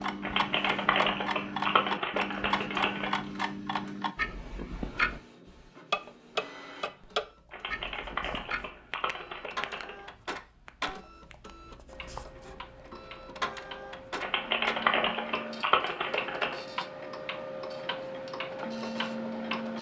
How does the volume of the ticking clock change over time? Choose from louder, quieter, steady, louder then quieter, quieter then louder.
quieter then louder.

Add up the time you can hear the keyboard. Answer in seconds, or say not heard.
8 s.